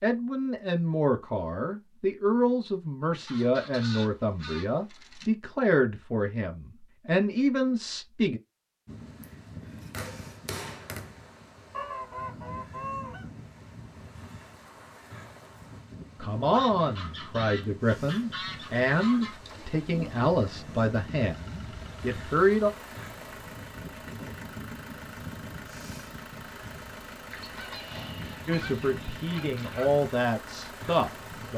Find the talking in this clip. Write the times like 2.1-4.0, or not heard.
0.0-8.4, 16.2-22.7, 28.4-31.5.